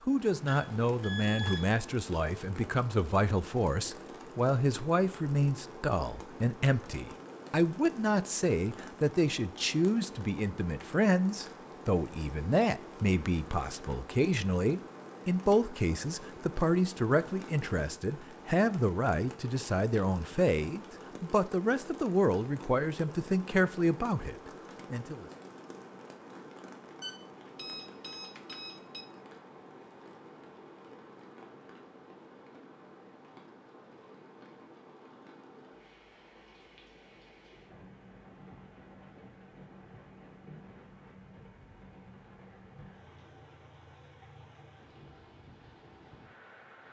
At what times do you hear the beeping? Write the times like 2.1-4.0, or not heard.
0.5-1.8, 27.0-29.1.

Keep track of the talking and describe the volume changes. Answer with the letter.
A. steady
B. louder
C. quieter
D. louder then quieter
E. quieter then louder
A.